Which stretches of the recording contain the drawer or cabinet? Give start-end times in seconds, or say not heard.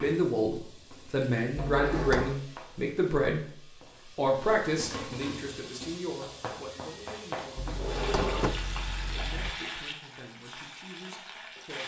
1.7-2.4, 7.5-9.5.